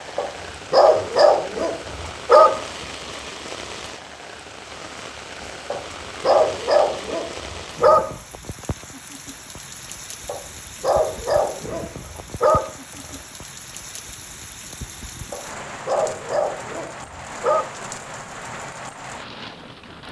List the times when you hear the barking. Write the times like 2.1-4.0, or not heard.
0.1-2.6, 5.7-8.2, 10.2-13.2, 15.3-17.7.